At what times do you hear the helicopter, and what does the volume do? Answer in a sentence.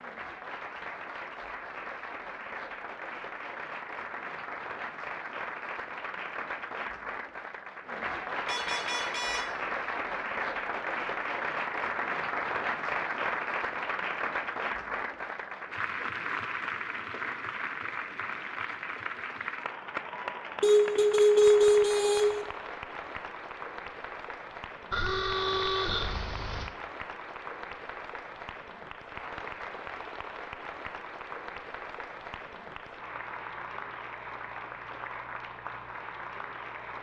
You can't hear the helicopter here.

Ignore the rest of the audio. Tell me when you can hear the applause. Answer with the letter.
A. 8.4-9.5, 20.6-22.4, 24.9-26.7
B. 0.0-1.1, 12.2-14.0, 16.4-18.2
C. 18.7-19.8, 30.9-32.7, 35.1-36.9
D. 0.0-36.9
D.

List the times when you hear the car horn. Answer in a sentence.
The car horn can be heard from 8.4 to 9.5 s, from 20.6 to 22.4 s and from 24.9 to 26.7 s.